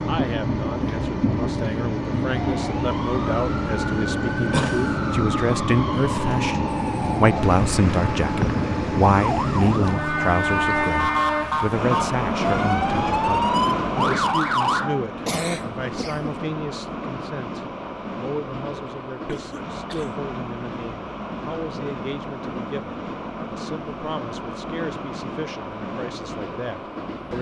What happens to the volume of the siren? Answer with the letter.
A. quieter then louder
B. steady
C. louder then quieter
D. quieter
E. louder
E.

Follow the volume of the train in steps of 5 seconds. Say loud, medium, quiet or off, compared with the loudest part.
loud, loud, loud, medium, medium, medium.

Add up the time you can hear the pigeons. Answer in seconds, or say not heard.
not heard.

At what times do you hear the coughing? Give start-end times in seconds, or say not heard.
4.5-5.0, 15.2-16.4, 19.2-20.1.